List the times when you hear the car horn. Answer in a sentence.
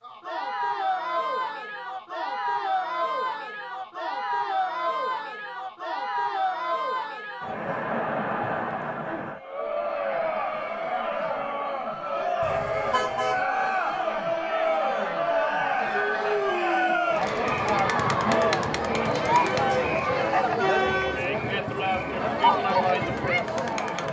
The car horn can be heard from 12.4 to 13.4 s.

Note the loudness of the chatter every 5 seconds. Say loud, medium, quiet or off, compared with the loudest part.
medium, medium, loud, loud, loud.